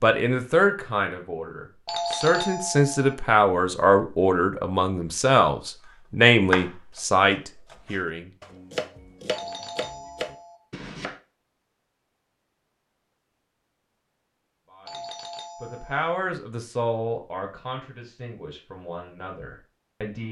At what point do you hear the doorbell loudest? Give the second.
2 s.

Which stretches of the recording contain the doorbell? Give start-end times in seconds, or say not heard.
1.9-3.1, 9.2-10.6, 14.8-16.1.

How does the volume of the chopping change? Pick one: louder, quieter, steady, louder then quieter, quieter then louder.
quieter then louder.